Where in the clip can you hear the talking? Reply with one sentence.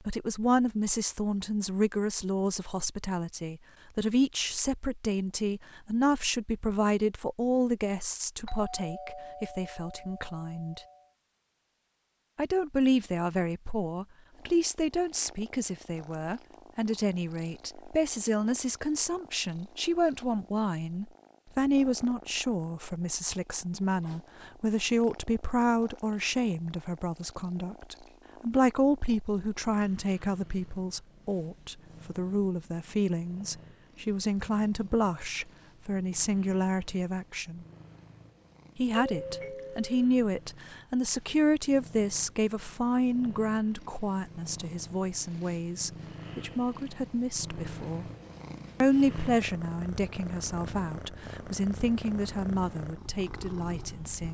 You can hear the talking from 0.1 to 10.8 s, from 12.3 to 37.6 s, from 38.8 to 48.0 s and from 48.8 to 54.2 s.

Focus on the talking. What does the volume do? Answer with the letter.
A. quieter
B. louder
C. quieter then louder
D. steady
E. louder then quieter
D.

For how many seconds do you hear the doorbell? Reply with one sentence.
You can hear the doorbell for 4 seconds altogether.